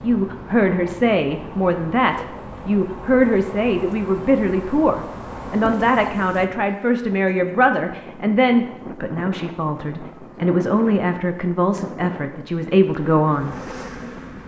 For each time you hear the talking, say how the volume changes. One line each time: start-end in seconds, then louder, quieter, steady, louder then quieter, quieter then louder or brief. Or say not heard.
0.0-13.6 steady.